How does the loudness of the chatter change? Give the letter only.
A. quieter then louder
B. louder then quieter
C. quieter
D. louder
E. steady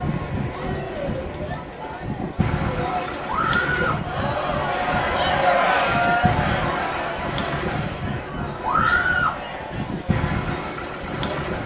B.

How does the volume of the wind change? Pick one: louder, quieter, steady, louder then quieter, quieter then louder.
steady.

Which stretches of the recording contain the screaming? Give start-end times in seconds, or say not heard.
3.2-4.0, 8.6-9.4.